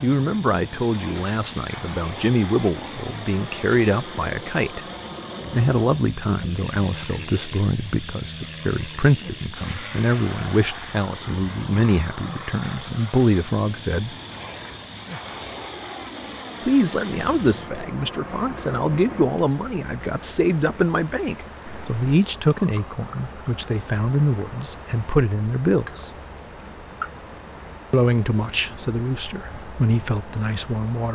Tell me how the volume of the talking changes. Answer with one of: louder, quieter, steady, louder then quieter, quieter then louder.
steady.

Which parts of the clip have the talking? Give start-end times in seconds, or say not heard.
0.0-4.8, 5.5-14.2, 16.6-26.1, 27.9-31.0.